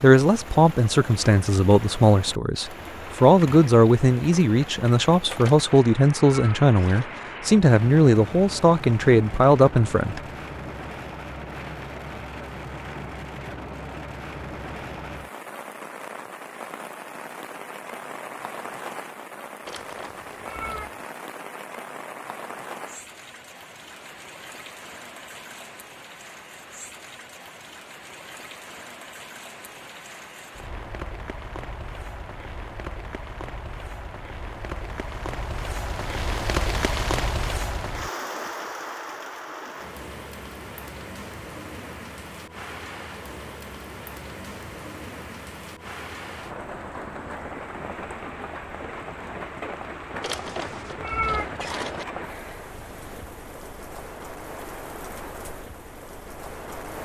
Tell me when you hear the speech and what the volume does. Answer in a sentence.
You can hear the speech from 0.0 to 10.2 s, at a steady volume.